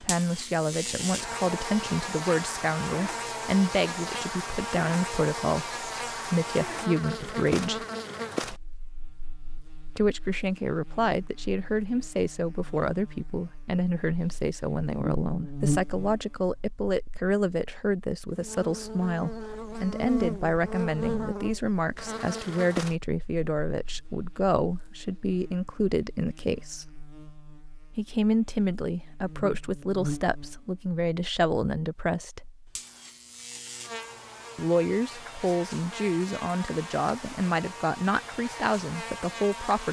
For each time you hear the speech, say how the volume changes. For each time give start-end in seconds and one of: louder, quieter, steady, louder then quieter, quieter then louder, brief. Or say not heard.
0.0-7.8 steady
9.9-26.9 steady
27.9-32.5 steady
34.5-39.8 steady.